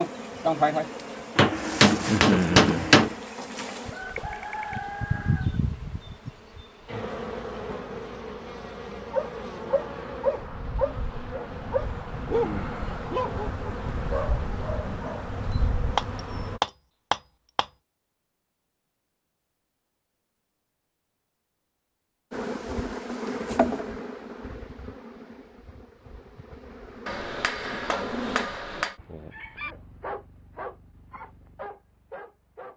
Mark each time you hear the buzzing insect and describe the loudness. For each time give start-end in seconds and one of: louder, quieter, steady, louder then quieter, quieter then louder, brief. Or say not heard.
0.0-16.6 quieter
22.3-28.4 quieter then louder.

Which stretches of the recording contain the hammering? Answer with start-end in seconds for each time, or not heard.
1.4-3.1, 15.9-17.6, 27.1-28.9.